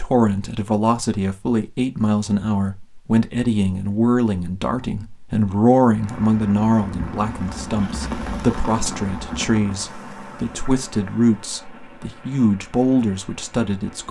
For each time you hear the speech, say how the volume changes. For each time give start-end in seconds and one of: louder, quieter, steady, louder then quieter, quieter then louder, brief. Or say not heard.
0.0-14.0 steady.